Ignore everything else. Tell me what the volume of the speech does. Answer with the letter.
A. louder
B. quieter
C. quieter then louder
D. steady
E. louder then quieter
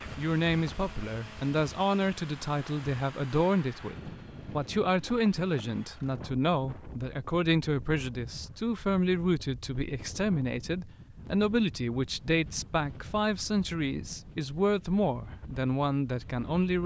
D.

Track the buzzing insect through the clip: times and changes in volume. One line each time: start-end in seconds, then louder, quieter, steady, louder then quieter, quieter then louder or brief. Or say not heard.
not heard.